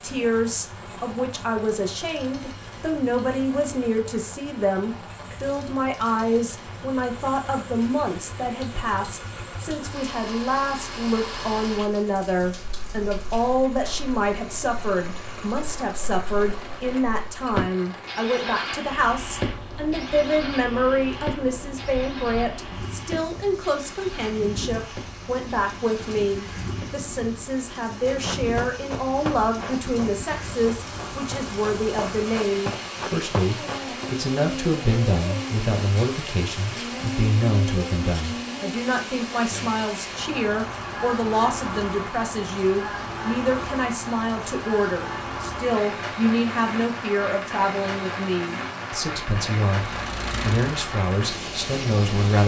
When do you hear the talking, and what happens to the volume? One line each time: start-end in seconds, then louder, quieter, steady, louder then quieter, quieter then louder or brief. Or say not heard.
0.0-52.4 steady.